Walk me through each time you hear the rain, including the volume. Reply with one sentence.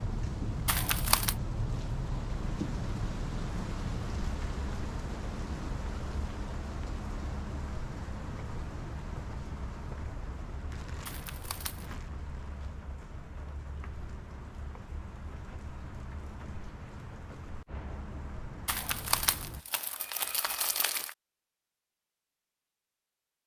The rain can be heard from 0.0 to 19.6 s, getting quieter.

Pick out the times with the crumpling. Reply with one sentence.
You can hear the crumpling from 0.7 to 1.4 s, from 11.1 to 11.9 s and from 18.6 to 21.1 s.